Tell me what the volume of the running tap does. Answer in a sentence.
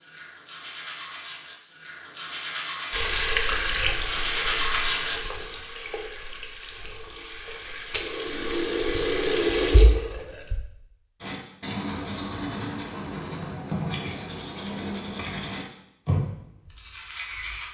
The loudness of the running tap goes down, then up.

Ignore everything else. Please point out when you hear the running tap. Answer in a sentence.
The running tap can be heard from 2.9 to 10.6 s.